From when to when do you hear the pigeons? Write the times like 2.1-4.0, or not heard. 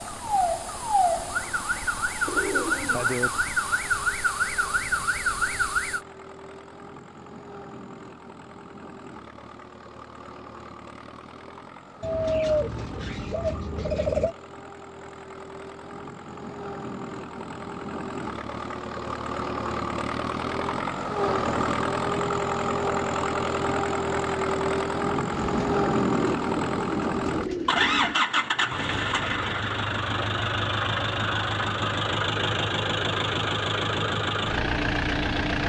2.2-3.3, 12.0-14.3, 25.5-28.1.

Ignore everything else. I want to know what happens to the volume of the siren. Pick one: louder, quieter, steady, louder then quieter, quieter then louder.
steady.